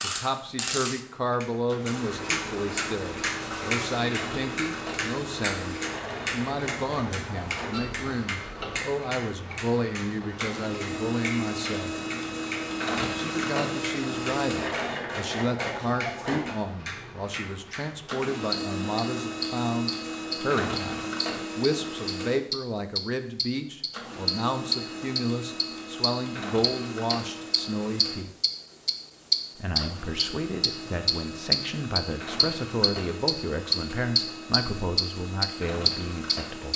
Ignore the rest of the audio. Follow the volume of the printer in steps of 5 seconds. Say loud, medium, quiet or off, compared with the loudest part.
medium, medium, loud, loud, loud, medium, medium, medium.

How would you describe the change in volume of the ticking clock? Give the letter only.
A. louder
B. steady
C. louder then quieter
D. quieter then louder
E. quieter
D.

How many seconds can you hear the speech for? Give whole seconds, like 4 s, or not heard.
34 s.